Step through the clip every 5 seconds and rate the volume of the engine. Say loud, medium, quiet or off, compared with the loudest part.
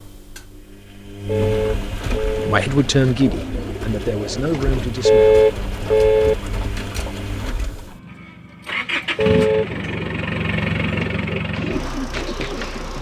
medium, loud, loud.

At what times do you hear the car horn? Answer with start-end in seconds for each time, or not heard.
1.2-2.6, 5.0-6.3, 9.2-9.8.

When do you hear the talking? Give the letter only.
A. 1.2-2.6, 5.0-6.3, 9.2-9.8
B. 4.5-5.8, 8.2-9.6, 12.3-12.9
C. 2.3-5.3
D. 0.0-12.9
C.